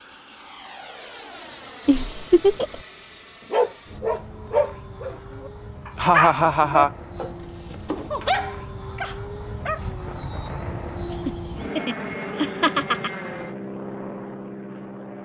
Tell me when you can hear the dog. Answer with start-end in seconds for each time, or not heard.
3.5-9.8.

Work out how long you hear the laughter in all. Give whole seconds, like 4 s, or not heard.
4 s.